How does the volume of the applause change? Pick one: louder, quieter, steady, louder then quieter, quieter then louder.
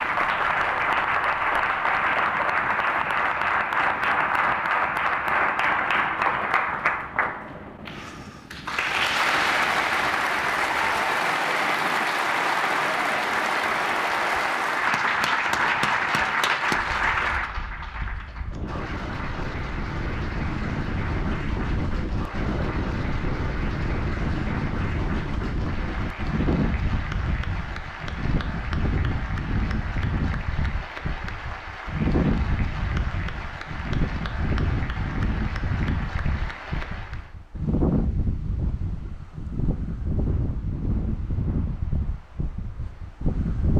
quieter.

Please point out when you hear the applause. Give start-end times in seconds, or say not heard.
0.0-37.4.